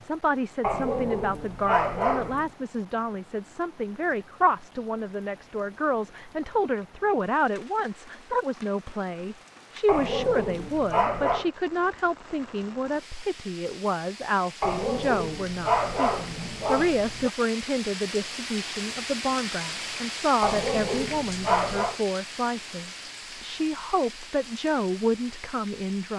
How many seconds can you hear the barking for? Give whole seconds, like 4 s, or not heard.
8 s.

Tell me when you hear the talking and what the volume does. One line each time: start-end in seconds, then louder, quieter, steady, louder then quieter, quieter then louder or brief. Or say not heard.
0.0-26.1 steady.